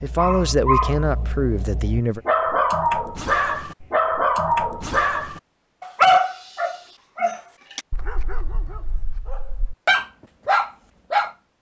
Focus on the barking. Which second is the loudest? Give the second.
6 s.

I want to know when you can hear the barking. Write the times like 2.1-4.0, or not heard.
0.0-11.3.